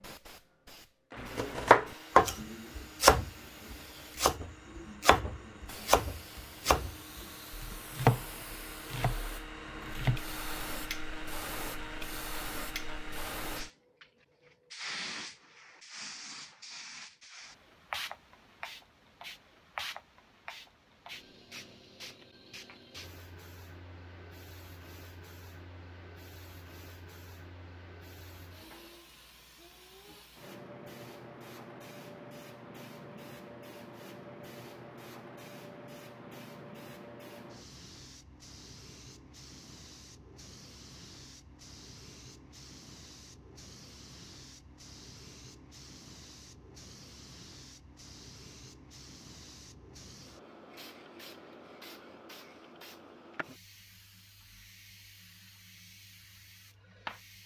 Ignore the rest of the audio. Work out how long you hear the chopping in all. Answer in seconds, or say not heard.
9 s.